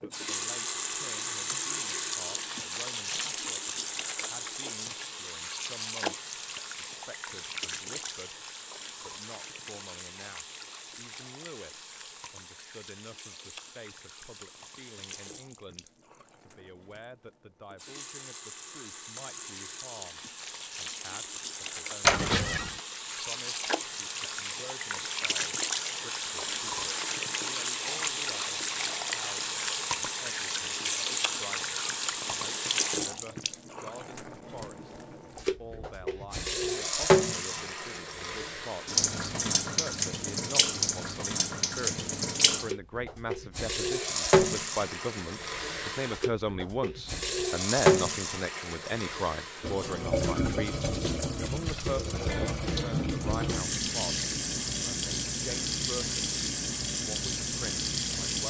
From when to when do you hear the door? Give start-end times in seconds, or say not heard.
22.0-22.8.